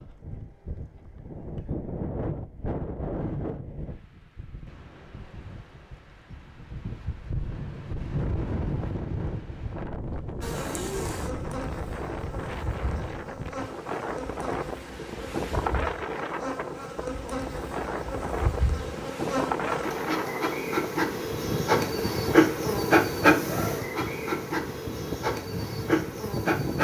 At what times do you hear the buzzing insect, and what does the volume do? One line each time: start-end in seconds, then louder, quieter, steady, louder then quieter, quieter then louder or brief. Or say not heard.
10.4-26.7 louder.